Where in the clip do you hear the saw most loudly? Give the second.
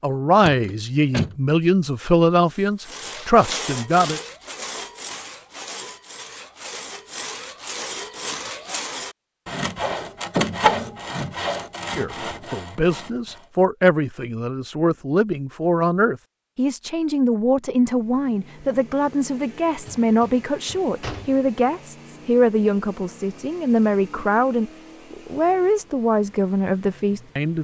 11 s.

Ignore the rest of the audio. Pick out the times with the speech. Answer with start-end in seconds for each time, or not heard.
0.0-4.2, 11.9-27.5.